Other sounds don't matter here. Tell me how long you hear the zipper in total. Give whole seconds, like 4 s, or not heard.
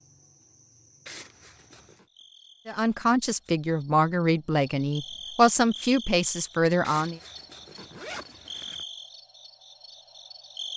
3 s.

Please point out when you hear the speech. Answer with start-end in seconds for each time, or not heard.
2.6-7.2.